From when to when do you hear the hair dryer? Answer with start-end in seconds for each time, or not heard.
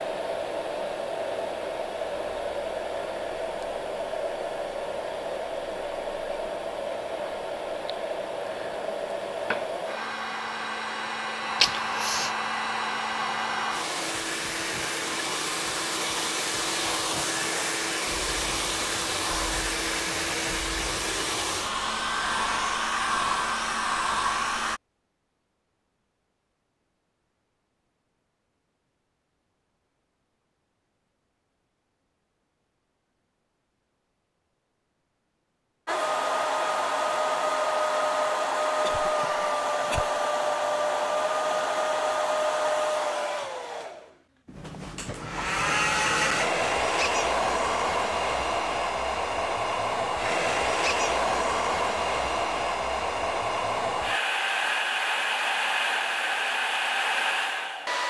0.0-24.8, 35.9-58.0.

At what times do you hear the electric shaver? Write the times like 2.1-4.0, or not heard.
not heard.